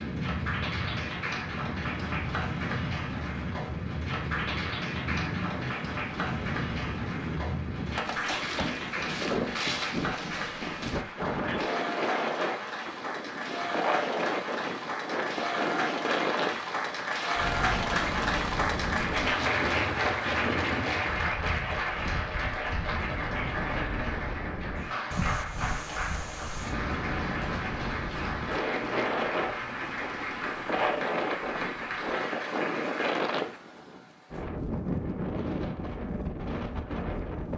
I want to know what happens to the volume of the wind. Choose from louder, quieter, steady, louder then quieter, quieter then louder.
steady.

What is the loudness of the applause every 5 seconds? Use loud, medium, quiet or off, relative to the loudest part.
medium, medium, medium, loud, loud, medium, medium, off.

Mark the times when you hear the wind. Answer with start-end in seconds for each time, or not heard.
0.0-37.5.